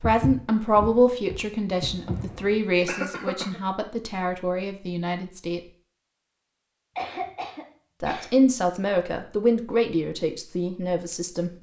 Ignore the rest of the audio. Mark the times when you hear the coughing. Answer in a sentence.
You can hear the coughing from 2.9 to 3.6 s and from 7.0 to 8.3 s.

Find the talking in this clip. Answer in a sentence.
You can hear the talking from 0.0 to 5.6 s and from 8.0 to 11.5 s.